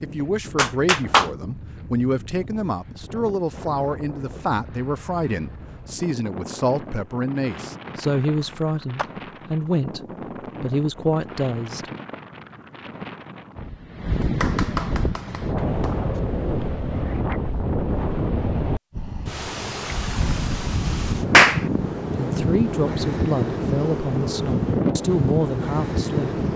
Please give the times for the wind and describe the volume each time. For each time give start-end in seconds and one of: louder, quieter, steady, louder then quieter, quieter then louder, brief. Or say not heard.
0.0-26.5 louder.